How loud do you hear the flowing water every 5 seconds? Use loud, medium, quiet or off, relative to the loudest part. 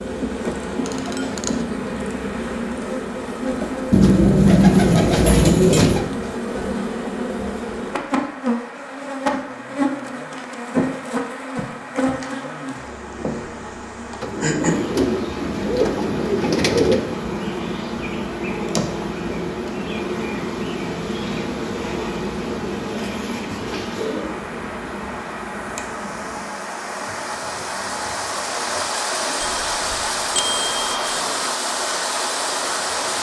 quiet, quiet, quiet, quiet, quiet, loud, loud.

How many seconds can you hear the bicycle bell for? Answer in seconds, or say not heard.
3 s.